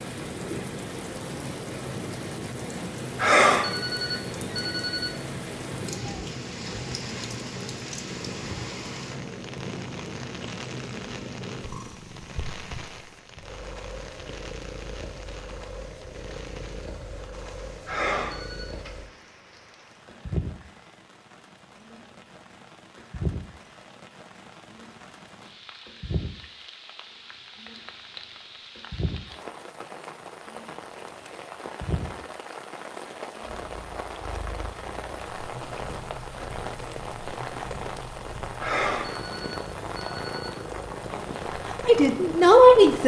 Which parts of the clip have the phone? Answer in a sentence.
The phone can be heard from 3.1 to 5.1 s, from 17.9 to 18.7 s and from 38.6 to 40.5 s.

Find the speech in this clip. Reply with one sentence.
You can hear the speech from 41.9 to 43.0 s.